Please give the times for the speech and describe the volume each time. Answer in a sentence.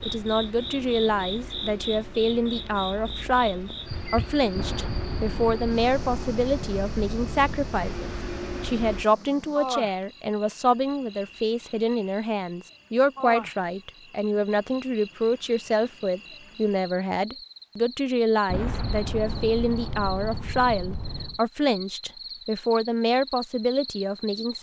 The speech can be heard from 0.0 to 24.5 s, at a steady volume.